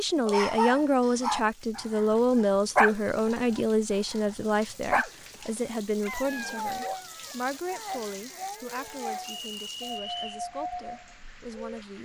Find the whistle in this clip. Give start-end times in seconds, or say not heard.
9.3-10.4.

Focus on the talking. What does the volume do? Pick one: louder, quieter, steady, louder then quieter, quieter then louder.
quieter.